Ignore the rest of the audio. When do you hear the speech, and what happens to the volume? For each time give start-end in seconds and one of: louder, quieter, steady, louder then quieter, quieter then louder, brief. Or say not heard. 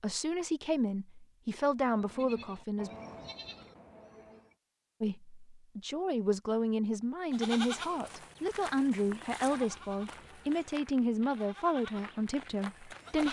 0.0-2.9 brief
5.0-13.2 steady.